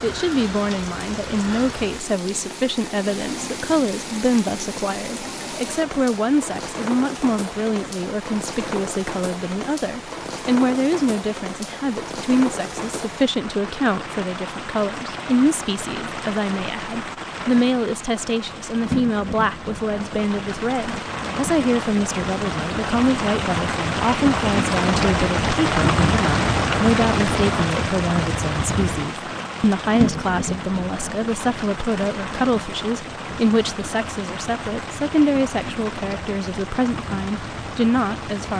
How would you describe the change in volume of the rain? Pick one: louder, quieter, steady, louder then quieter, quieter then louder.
louder then quieter.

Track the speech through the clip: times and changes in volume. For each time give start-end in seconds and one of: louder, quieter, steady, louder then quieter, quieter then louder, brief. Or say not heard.
0.0-38.5 steady.